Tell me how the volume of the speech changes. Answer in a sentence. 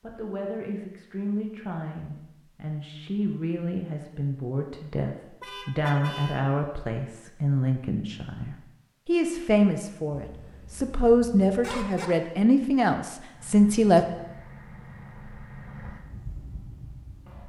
The volume of the speech goes up.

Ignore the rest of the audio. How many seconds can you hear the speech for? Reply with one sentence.
The speech can be heard for 14 seconds in total.